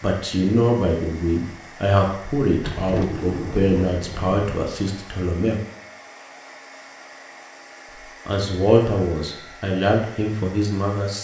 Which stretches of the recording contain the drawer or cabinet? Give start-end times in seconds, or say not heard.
2.5-4.4.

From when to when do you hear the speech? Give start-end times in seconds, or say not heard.
0.0-5.6, 8.2-11.1.